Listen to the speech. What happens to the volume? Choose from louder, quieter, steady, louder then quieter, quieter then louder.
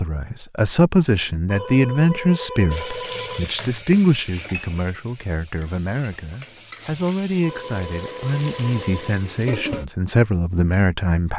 quieter then louder.